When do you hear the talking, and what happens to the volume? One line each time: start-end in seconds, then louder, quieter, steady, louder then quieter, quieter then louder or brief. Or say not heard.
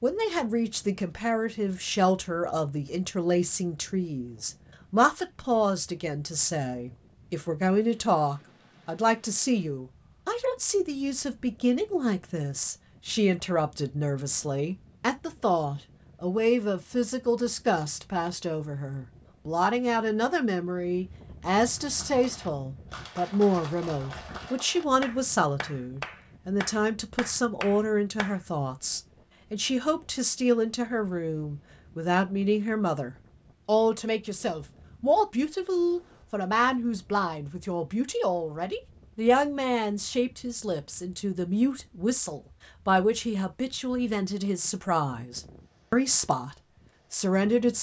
0.0-47.7 steady.